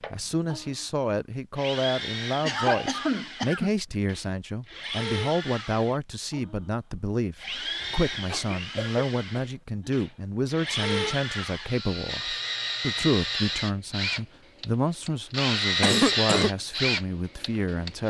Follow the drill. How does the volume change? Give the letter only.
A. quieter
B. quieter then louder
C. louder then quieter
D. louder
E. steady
D.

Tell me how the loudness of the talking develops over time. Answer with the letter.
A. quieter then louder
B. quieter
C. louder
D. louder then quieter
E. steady
E.